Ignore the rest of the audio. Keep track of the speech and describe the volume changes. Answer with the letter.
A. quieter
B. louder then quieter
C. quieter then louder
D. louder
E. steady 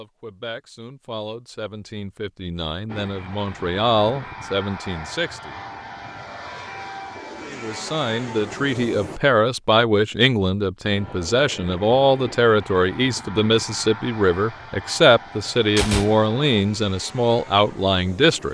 D.